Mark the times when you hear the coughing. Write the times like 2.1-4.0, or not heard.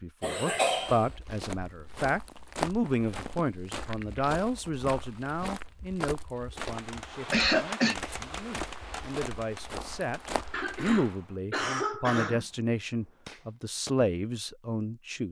0.2-1.1, 7.3-8.0, 10.5-12.4.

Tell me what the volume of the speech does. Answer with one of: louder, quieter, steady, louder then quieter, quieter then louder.
quieter then louder.